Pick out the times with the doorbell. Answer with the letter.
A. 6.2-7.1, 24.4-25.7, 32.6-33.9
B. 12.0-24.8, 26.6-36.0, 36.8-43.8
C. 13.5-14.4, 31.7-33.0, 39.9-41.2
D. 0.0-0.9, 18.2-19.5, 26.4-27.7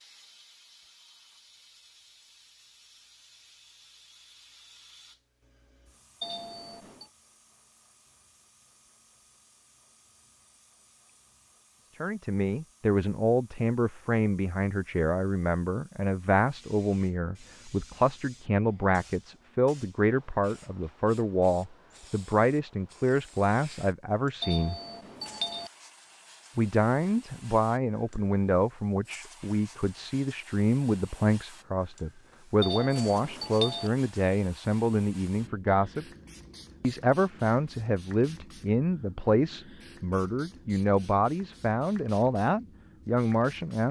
A.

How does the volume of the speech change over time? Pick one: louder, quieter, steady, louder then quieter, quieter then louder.
steady.